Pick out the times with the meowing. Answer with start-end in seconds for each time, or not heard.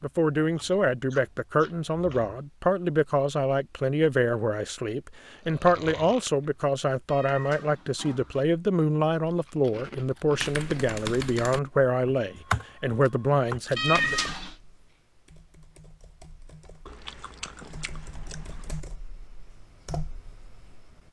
7.0-8.4, 13.8-14.6.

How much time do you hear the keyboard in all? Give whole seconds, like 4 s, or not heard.
11 s.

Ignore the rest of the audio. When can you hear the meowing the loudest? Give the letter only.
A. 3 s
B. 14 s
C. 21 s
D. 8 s
B.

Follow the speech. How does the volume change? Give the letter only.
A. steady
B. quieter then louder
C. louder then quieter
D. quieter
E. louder
A.